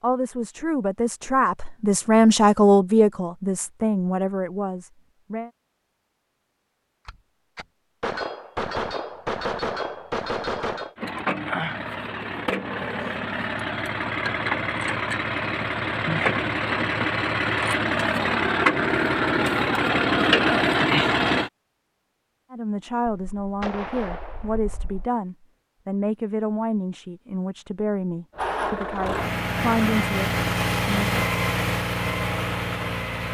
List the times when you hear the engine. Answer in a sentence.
You can hear the engine from 10.9 to 21.5 s and from 28.4 to 33.2 s.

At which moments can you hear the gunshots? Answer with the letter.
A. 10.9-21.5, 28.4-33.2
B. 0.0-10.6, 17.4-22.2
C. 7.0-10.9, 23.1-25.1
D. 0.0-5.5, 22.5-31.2
C.